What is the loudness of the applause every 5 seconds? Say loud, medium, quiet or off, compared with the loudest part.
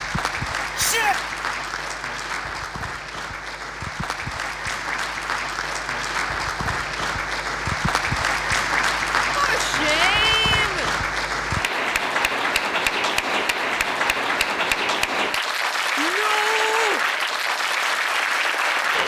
medium, loud, loud, loud.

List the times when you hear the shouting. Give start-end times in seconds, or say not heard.
0.8-1.2, 9.3-10.9, 15.9-17.0.